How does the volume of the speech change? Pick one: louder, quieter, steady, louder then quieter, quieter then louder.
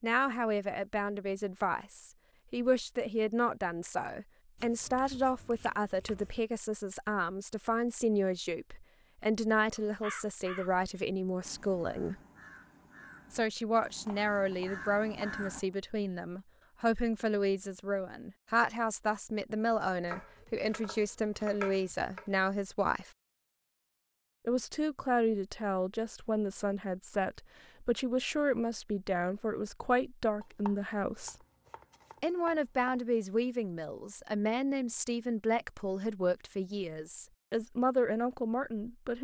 steady.